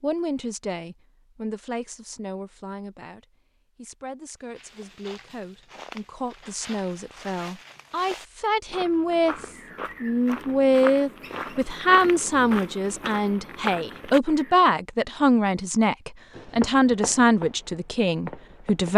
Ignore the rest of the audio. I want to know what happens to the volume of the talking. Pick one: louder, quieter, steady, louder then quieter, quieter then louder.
louder.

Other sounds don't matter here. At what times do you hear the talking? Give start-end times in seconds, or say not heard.
0.0-18.9.